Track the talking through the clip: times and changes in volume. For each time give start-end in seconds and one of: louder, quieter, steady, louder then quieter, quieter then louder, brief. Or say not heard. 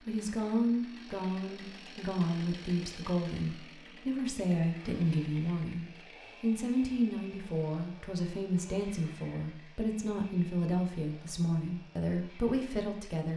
0.1-13.3 steady.